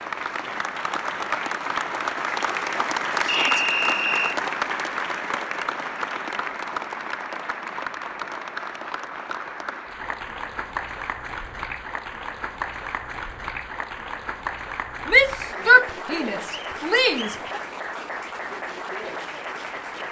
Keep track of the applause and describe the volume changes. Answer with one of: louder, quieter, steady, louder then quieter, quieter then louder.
quieter.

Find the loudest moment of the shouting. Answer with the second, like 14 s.
16 s.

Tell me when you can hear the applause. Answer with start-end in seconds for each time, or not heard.
0.0-20.0.